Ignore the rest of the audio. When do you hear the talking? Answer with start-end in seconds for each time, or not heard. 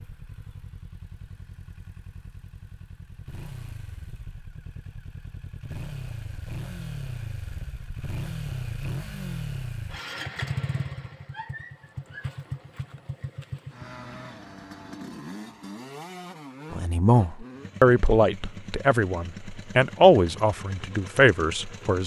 16.7-22.0.